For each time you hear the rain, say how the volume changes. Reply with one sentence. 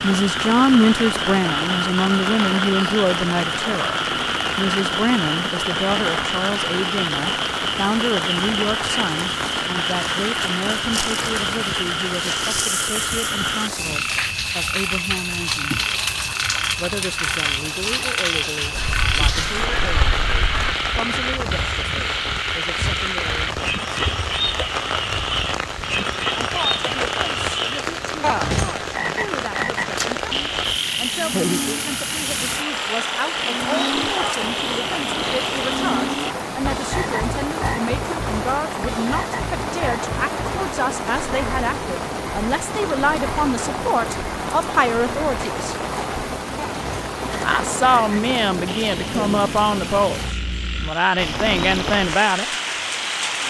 The rain can be heard from 0.0 to 53.4 s, at a steady volume.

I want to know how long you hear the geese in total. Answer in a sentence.
The geese can be heard for 2 seconds in total.